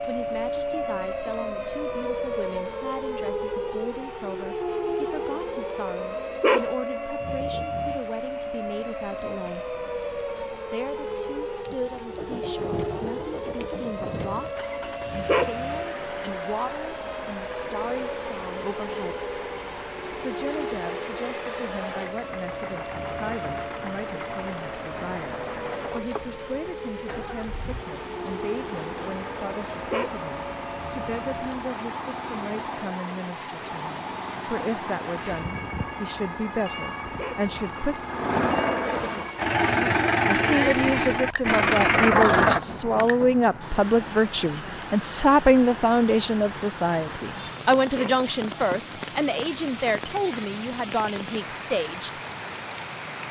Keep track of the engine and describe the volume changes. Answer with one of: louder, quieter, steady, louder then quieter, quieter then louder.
louder.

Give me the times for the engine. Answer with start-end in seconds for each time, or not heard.
12.1-43.6.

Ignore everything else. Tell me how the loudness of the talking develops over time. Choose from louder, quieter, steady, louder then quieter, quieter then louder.
louder.